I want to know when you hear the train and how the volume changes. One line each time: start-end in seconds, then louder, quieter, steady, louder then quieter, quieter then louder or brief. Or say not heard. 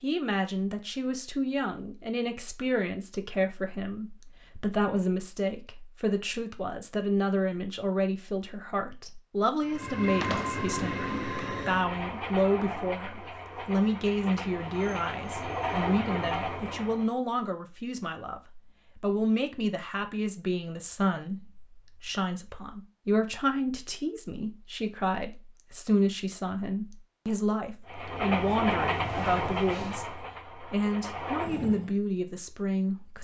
9.7-17.1 quieter then louder
27.9-31.9 quieter then louder.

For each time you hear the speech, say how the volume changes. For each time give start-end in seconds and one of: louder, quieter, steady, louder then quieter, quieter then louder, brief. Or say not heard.
0.0-33.1 steady.